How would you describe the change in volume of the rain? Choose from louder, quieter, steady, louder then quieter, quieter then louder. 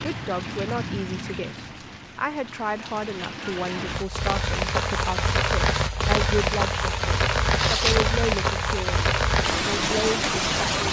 louder.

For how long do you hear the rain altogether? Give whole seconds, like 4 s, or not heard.
11 s.